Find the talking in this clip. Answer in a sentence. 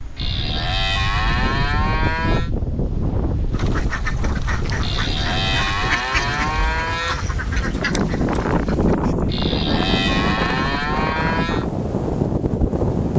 The talking can't be heard in this clip.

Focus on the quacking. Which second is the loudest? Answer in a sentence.
The volume of the quacking peaks at 6 seconds.